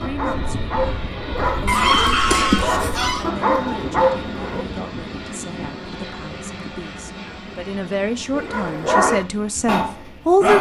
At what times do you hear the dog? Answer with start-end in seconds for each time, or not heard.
0.0-4.7, 8.3-10.5.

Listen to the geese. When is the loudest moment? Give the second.
2 s.